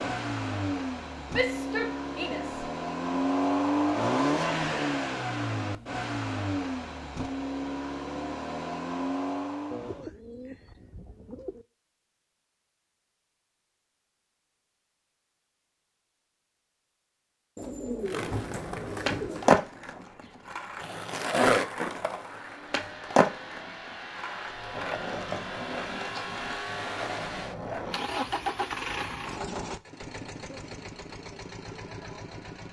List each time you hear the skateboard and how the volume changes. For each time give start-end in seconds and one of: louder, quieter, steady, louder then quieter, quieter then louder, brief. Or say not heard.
18.1-28.1 quieter.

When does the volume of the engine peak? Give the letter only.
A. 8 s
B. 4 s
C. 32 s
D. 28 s
B.